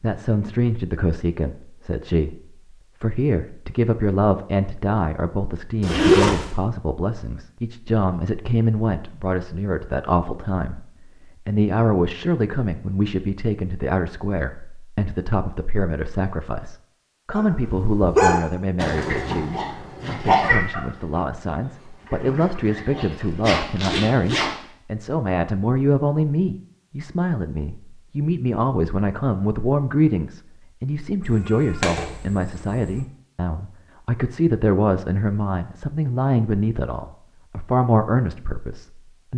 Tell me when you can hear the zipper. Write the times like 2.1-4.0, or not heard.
5.8-6.5, 23.4-24.5.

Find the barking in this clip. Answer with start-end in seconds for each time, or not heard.
17.4-23.6.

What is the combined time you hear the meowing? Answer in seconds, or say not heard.
2 s.